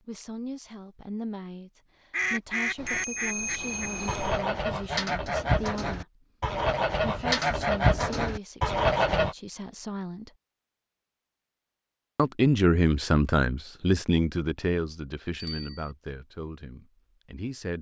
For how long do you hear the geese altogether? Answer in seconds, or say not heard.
7 s.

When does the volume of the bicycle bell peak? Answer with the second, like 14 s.
3 s.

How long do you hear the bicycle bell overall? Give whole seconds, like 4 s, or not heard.
2 s.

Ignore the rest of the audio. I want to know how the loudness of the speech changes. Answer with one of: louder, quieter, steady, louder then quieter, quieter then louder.
louder then quieter.